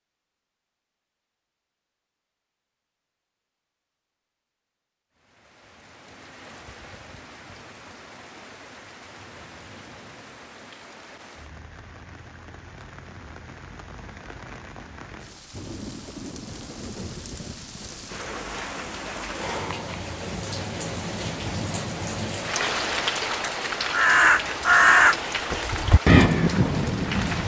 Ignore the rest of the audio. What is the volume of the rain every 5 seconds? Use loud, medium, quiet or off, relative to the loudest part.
off, quiet, quiet, medium, loud, loud.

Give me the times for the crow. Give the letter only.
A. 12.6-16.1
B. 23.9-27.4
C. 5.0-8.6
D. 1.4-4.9
B.